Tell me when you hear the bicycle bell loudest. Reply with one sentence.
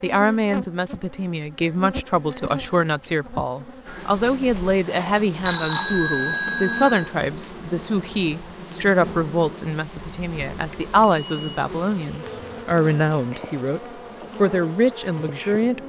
The volume of the bicycle bell peaks at 6 seconds.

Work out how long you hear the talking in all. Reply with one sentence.
The talking can be heard for 16 seconds in total.